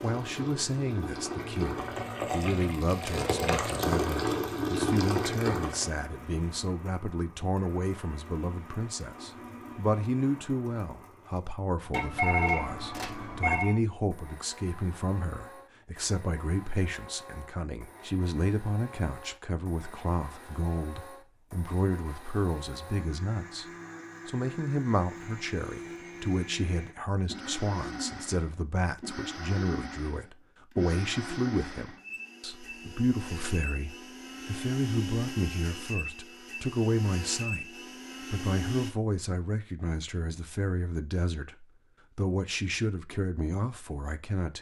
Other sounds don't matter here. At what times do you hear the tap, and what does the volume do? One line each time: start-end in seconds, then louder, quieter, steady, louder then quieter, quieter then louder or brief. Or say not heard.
0.0-6.0 louder.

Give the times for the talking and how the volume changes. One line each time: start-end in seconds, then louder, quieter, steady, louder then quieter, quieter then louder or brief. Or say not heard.
0.0-23.6 steady
24.2-44.5 steady.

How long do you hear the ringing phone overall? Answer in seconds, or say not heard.
2 s.